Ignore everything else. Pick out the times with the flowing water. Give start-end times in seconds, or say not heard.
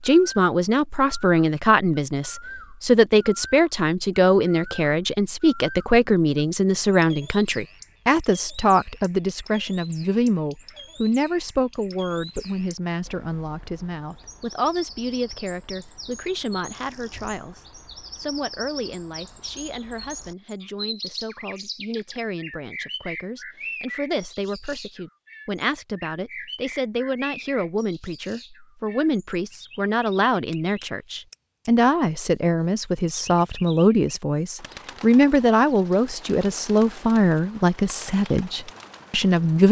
not heard.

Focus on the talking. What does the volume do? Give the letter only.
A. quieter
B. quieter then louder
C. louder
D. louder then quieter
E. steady
B.